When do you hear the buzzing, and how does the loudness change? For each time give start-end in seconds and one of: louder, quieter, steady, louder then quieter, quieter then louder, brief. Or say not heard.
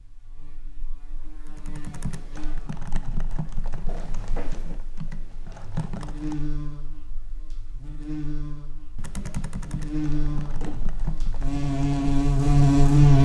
0.0-13.2 quieter then louder.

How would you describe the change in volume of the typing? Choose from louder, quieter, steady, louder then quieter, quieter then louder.
steady.